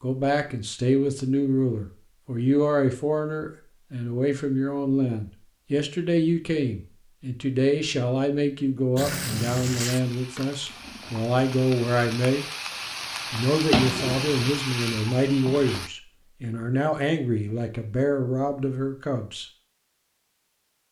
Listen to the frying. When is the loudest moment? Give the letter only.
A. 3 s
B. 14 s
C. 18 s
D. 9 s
B.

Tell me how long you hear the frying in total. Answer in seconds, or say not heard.
7 s.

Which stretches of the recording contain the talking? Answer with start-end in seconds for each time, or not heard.
0.0-12.4, 13.3-19.4.